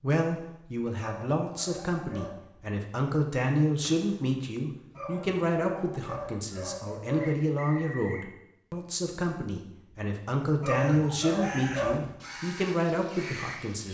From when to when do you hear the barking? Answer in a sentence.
The barking can be heard from 0.9 to 2.5 s, from 5.0 to 7.4 s and from 10.6 to 12.2 s.